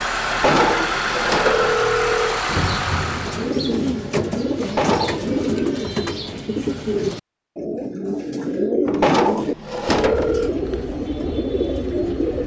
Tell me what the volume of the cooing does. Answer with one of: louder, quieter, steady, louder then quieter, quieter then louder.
steady.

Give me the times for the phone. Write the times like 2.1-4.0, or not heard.
0.2-2.4, 4.6-5.4, 8.8-10.5.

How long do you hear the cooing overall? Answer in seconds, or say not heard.
10 s.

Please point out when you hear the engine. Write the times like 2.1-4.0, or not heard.
0.0-3.6.